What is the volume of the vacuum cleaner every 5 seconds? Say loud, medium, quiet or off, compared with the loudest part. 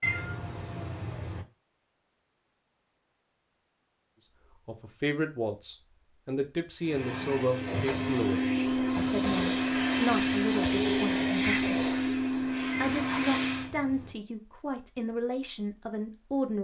off, loud, loud, off.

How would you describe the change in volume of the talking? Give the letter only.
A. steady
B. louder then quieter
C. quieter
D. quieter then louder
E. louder
A.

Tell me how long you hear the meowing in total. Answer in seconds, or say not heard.
3 s.